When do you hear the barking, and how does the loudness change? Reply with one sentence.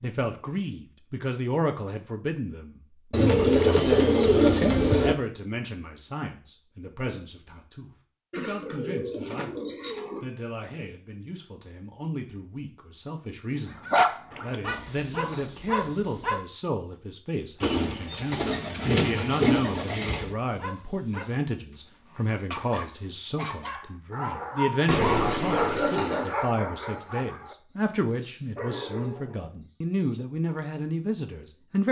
The barking can be heard briefly from 13.8 to 16.4 s; and from 20.5 to 30.2 s, getting louder then quieter.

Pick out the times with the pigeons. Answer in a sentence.
You can hear the pigeons from 3.1 to 5.2 s, from 8.3 to 10.2 s, from 17.6 to 20.4 s and from 24.9 to 26.4 s.